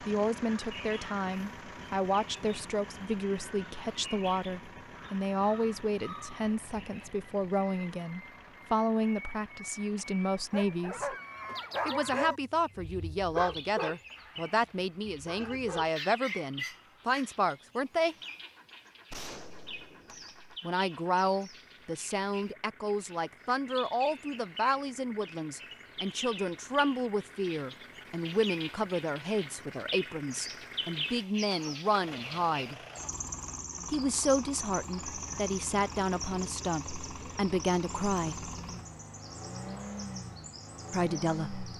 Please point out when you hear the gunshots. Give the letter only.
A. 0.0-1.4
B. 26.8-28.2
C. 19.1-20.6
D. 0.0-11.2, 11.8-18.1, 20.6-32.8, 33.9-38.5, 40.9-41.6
C.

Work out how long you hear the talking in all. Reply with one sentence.
You can hear the talking for 35 seconds altogether.